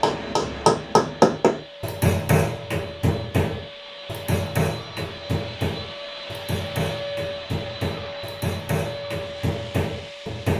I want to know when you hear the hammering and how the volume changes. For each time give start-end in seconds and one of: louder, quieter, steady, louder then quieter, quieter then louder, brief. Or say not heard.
0.0-10.5 quieter.